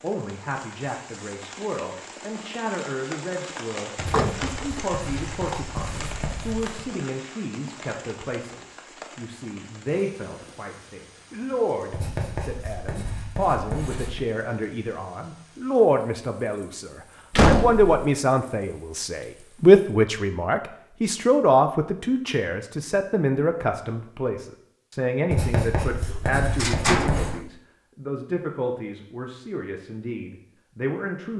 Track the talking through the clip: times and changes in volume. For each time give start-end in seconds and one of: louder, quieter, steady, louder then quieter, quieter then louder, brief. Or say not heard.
0.0-31.3 louder then quieter.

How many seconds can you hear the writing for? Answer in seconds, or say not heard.
7 s.